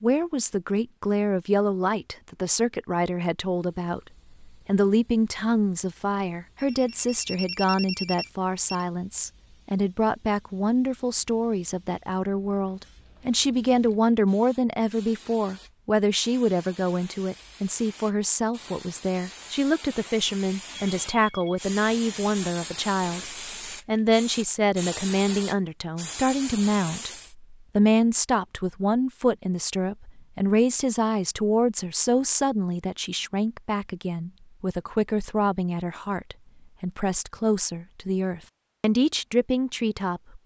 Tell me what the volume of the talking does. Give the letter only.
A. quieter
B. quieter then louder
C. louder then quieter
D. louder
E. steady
E.